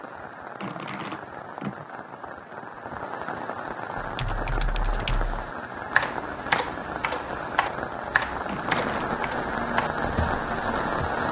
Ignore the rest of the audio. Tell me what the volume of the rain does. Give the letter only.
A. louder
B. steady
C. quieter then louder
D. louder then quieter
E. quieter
A.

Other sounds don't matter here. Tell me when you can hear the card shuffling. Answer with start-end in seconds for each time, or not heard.
0.6-1.9, 8.4-9.1.